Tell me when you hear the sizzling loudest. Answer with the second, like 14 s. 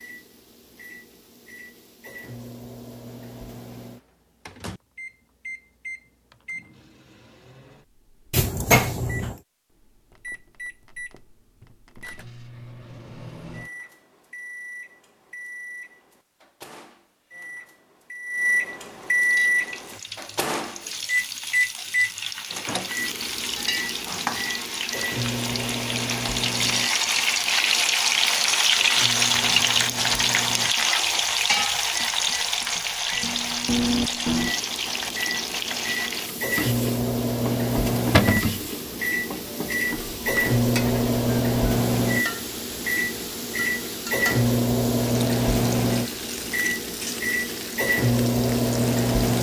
29 s.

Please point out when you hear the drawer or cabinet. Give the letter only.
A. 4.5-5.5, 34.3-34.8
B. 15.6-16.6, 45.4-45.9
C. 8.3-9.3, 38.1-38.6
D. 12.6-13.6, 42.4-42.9
C.